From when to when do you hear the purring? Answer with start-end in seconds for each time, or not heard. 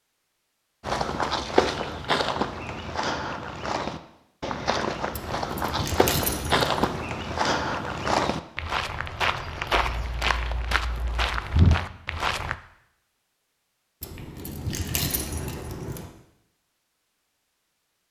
not heard.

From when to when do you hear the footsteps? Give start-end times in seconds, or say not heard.
0.8-12.6.